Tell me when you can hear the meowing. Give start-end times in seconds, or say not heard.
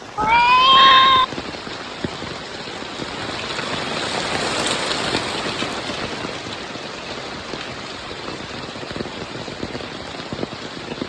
0.1-1.2.